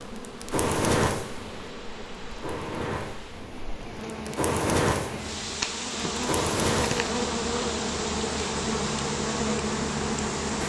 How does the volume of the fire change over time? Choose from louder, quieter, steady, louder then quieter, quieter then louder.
quieter then louder.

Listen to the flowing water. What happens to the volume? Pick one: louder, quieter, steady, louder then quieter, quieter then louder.
louder.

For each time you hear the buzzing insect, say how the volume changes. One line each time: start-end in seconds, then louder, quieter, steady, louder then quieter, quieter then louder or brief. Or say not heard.
0.0-10.6 louder.